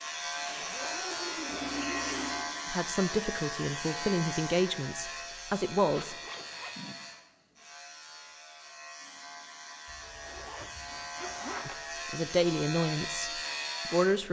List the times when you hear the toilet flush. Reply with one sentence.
You can hear the toilet flush from 1.4 to 2.5 s.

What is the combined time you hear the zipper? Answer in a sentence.
You can hear the zipper for 6 seconds altogether.